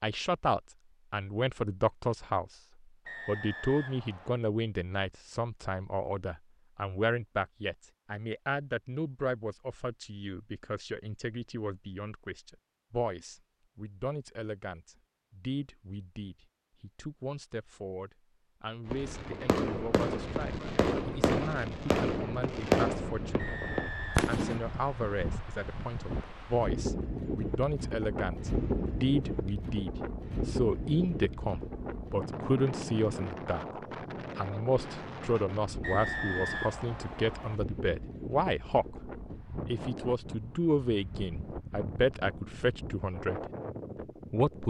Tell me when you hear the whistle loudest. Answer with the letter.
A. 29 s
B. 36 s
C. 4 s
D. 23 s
B.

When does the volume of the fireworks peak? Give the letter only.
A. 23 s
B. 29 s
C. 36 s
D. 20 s
A.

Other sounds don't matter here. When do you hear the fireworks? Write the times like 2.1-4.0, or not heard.
18.9-24.6.